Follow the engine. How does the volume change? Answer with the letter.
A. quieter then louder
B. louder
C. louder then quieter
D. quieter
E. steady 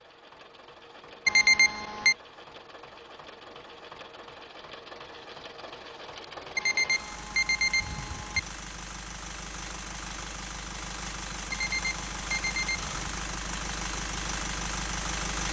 B.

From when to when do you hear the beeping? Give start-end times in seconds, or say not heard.
1.2-2.1, 6.5-8.4, 11.5-13.2.